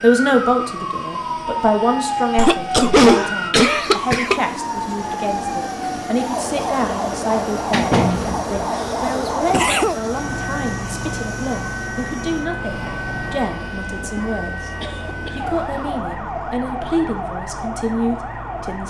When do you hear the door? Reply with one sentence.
You can hear the door from 7.2 to 8.5 s.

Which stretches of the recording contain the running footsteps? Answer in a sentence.
The running footsteps can't be heard in this clip.